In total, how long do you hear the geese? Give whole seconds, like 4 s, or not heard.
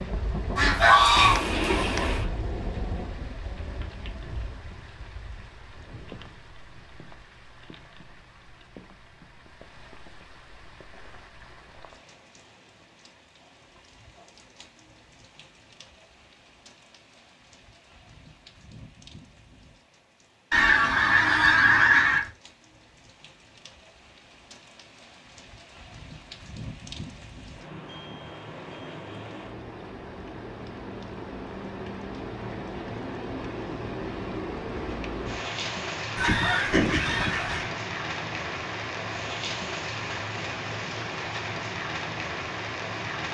5 s.